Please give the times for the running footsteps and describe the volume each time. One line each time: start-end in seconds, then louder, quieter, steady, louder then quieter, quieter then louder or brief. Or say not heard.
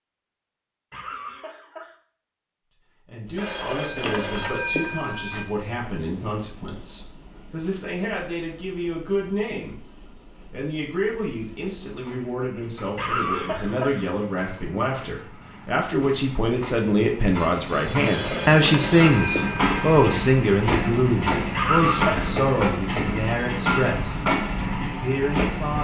not heard.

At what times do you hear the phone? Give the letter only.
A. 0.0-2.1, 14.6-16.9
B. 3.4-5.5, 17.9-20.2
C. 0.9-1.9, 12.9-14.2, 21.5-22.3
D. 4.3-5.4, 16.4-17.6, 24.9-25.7
B.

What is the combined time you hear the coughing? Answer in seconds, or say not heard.
3 s.